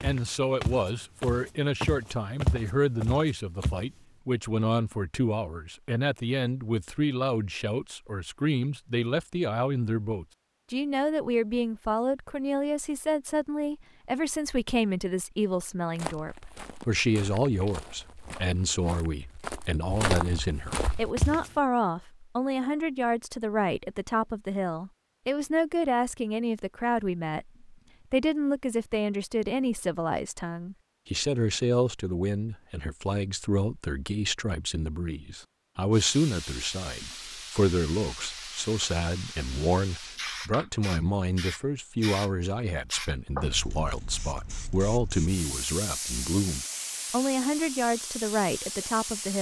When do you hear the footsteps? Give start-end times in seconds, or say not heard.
0.0-3.9, 15.9-21.5.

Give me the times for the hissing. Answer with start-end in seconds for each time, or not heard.
35.9-49.3.